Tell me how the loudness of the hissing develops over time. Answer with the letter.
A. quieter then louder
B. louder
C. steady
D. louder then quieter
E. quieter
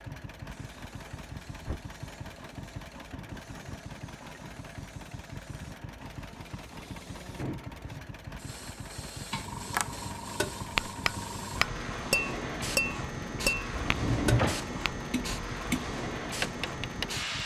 B.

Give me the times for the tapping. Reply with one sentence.
You can hear the tapping from 9.7 to 17.1 s.